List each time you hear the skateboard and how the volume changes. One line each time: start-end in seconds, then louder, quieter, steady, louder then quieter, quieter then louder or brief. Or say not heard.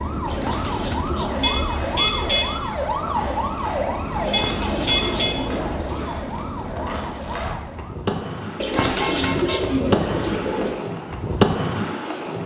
0.0-12.4 louder.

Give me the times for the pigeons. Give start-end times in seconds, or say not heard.
0.2-2.4, 4.2-6.2, 8.6-10.8.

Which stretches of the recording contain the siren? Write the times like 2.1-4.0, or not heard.
0.0-8.1.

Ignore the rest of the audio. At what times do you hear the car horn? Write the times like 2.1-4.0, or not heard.
1.4-2.5, 4.3-5.4, 8.8-9.8.